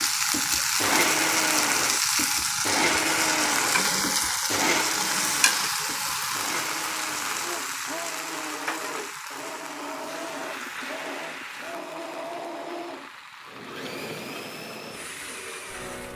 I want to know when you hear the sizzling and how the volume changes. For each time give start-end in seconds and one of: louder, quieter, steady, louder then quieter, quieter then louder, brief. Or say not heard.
0.0-16.1 quieter.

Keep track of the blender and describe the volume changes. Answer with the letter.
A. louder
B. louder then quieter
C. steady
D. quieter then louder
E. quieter
E.